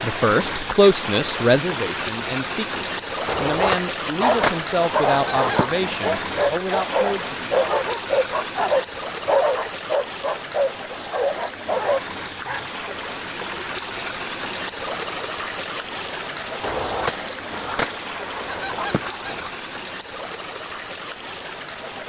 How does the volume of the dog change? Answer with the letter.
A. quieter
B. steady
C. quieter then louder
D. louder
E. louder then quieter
B.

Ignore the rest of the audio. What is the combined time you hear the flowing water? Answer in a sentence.
The flowing water can be heard for 22 seconds in total.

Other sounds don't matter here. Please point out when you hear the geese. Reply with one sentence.
The geese can be heard from 3.2 to 5.9 s and from 16.6 to 19.5 s.